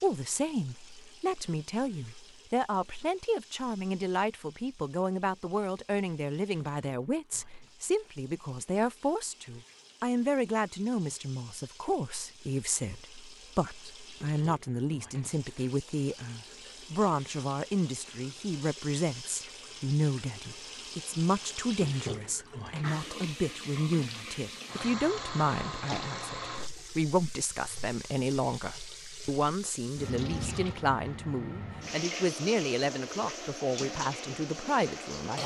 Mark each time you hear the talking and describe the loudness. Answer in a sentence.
You can hear the talking from 0.0 to 35.4 s, at a steady volume.